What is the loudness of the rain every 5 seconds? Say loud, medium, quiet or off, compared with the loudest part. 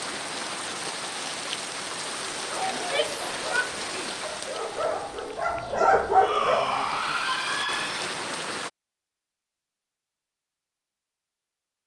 loud, loud, off.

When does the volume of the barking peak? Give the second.
6 s.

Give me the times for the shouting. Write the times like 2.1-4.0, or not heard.
2.8-4.2, 6.1-8.2.